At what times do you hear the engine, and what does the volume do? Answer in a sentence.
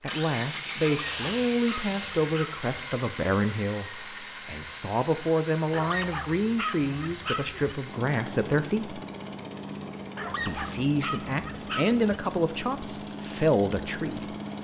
The engine can be heard from 0.1 to 14.5 s, getting quieter.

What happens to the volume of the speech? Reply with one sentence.
The volume of the speech stays about the same.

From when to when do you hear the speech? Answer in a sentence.
The speech can be heard from 0.0 to 9.0 s and from 10.4 to 14.3 s.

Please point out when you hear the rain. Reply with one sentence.
You can't hear the rain here.